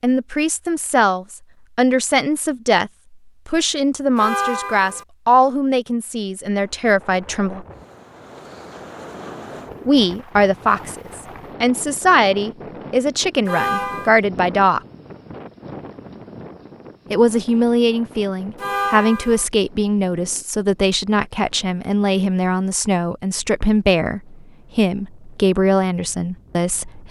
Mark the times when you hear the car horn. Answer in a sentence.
The car horn can be heard from 4.2 to 5.0 s, from 13.4 to 14.2 s and from 18.6 to 19.4 s.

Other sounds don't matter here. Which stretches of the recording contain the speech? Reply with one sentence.
You can hear the speech from 0.0 to 7.7 s, from 9.8 to 14.8 s and from 17.1 to 27.0 s.